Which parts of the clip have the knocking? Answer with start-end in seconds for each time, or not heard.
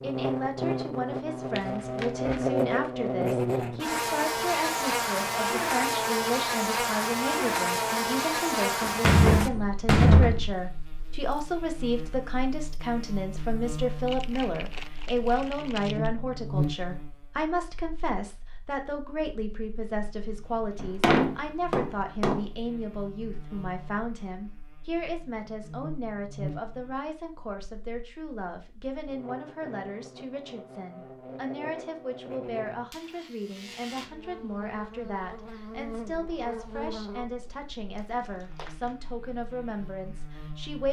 8.8-10.4, 20.8-22.4.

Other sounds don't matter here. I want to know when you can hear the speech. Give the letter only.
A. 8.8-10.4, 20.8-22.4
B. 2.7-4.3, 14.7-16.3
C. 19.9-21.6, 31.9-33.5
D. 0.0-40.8
D.